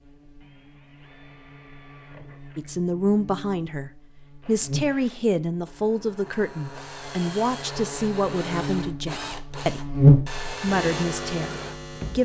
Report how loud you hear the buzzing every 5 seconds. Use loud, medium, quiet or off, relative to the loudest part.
quiet, quiet, loud.